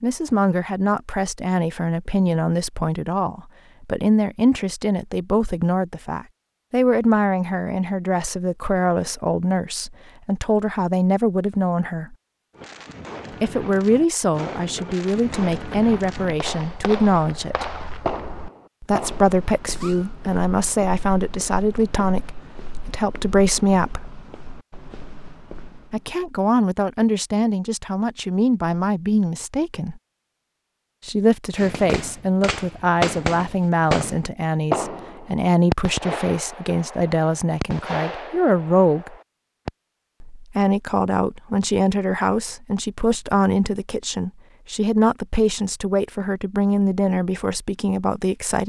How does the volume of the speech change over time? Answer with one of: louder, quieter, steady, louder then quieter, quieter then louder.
steady.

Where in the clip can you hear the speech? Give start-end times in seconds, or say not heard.
0.0-12.2, 13.3-17.6, 18.8-24.1, 25.9-30.0, 31.1-39.1, 40.2-48.6.